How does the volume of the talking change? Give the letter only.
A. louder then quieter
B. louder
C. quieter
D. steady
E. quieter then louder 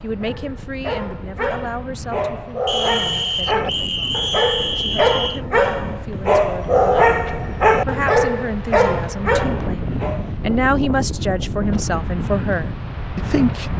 E.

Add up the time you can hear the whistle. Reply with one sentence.
You can hear the whistle for 3 seconds altogether.